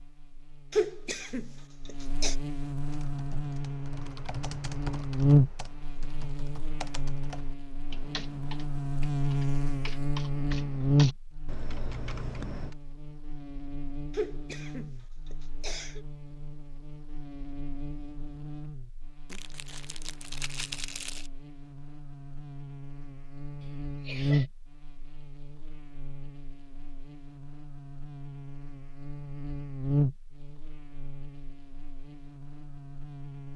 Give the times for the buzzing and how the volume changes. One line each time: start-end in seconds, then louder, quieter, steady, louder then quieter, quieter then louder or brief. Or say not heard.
0.0-33.5 quieter then louder.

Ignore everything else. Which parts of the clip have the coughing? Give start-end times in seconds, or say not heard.
0.7-2.4, 14.1-16.1, 23.6-24.5.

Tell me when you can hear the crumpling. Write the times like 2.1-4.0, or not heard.
19.3-21.3.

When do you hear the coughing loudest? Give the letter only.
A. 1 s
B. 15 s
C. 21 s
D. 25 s
A.